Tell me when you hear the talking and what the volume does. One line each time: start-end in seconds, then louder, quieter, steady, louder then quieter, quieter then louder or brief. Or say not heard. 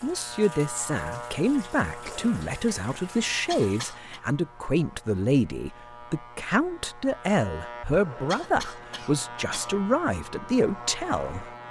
0.0-11.5 steady.